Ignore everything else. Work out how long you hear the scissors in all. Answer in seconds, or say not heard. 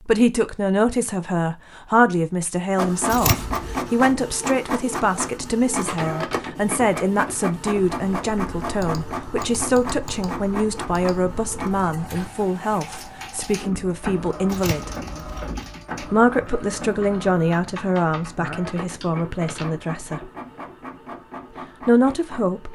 2 s.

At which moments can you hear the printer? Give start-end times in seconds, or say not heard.
2.8-22.7.